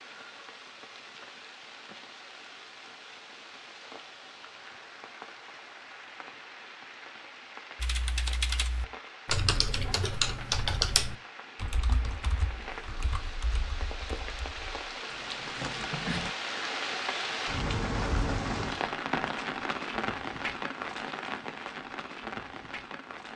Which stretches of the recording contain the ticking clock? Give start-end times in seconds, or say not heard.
not heard.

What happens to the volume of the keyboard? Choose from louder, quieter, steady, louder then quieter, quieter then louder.
quieter.